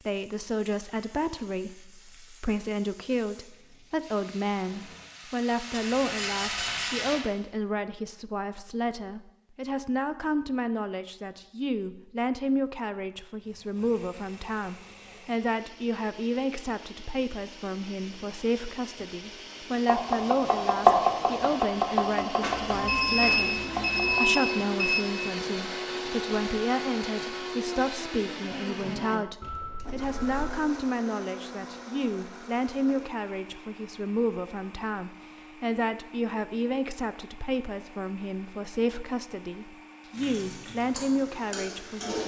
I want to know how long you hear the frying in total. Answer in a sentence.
You can hear the frying for 9 seconds altogether.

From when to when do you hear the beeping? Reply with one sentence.
You can hear the beeping from 5.7 to 7.0 s, from 22.4 to 25.1 s and from 29.4 to 30.5 s.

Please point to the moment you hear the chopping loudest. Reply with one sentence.
The volume of the chopping peaks at 21 seconds.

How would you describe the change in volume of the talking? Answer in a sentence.
The volume of the talking stays about the same.